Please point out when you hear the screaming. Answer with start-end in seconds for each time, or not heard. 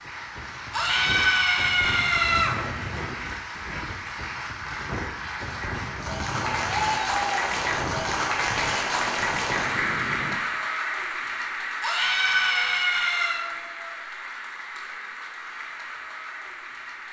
0.7-2.5, 6.5-7.5, 11.8-13.4.